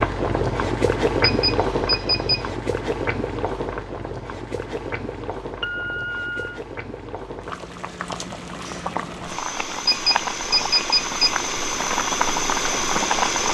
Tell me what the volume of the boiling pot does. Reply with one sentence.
The volume of the boiling pot goes down, then up.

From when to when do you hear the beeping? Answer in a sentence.
The beeping can be heard from 1.2 to 2.5 s, from 5.6 to 6.6 s and from 9.8 to 11.2 s.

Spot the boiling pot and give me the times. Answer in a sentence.
The boiling pot can be heard from 0.0 to 13.4 s.